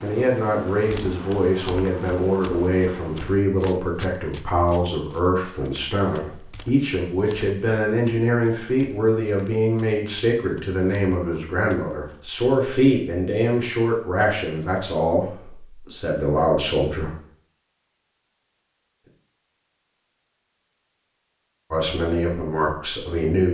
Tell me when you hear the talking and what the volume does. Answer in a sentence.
The talking can be heard from 0.0 to 17.1 s, at a steady volume; and briefly from 21.7 to 23.4 s.